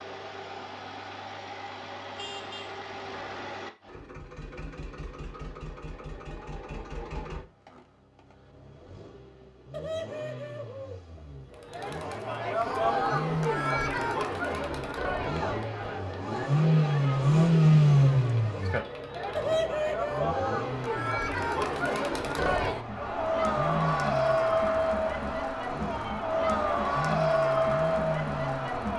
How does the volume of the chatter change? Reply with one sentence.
The volume of the chatter goes down, then up.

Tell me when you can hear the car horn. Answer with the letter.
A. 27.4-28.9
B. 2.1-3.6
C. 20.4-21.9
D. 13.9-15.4
B.